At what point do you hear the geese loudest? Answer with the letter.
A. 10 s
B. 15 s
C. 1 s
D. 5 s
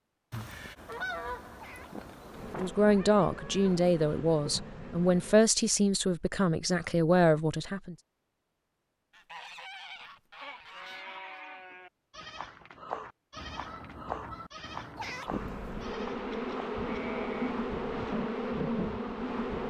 C.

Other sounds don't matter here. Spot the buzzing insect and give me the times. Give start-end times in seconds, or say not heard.
2.3-5.4, 15.2-19.6.